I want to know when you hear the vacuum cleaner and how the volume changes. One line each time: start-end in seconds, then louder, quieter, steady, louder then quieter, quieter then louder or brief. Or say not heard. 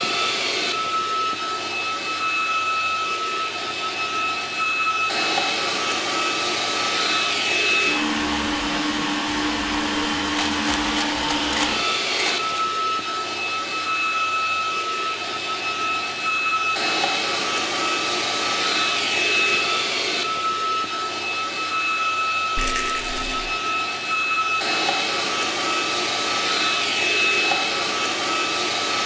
0.0-29.0 steady.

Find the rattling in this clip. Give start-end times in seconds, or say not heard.
10.3-12.7, 22.6-23.4.